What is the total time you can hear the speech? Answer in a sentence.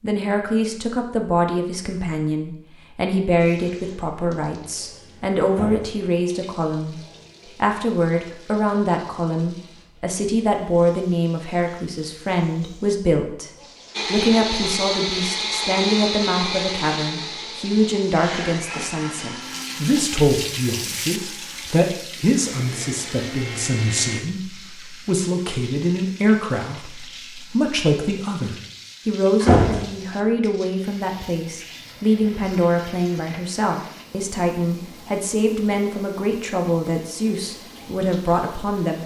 You can hear the speech for 39 seconds altogether.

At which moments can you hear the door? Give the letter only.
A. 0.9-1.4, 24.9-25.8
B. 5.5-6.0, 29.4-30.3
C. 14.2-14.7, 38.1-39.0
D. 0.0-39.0
B.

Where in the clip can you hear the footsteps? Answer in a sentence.
The footsteps can't be heard in this clip.